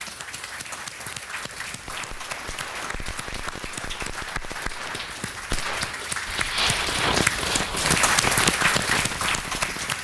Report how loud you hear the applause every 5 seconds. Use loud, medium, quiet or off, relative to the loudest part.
medium, loud.